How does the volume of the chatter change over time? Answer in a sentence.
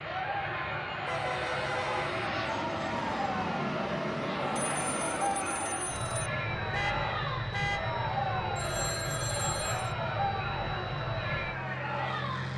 The loudness of the chatter stays about the same.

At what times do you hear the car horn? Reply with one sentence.
The car horn can be heard from 1.0 to 2.1 s and from 6.7 to 7.8 s.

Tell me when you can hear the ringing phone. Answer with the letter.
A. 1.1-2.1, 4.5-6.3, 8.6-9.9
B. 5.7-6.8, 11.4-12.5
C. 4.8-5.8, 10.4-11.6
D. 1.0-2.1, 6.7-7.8
A.